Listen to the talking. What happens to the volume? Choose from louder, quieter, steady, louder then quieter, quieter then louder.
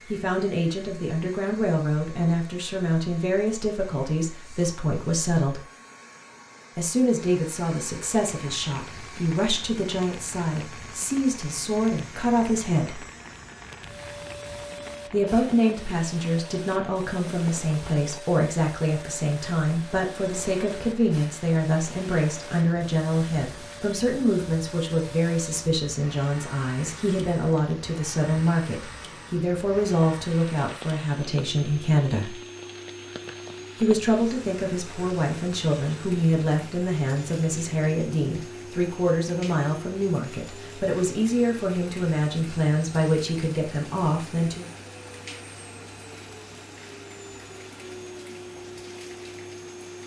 steady.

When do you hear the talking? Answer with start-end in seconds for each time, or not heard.
0.1-5.7, 6.8-13.1, 15.1-32.4, 33.8-44.6.